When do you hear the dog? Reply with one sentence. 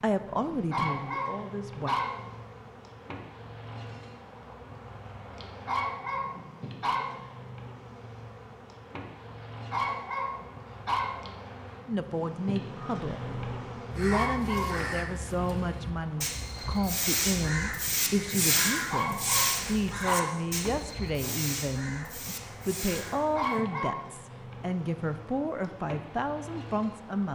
You can hear the dog from 0.7 to 2.4 s, from 5.7 to 7.2 s, from 9.7 to 11.3 s, from 14.1 to 14.8 s, from 18.9 to 20.6 s and from 23.4 to 24.1 s.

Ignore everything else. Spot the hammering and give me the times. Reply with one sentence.
The hammering can't be heard in this clip.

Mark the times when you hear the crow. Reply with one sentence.
The crow can be heard from 12.8 to 23.6 s.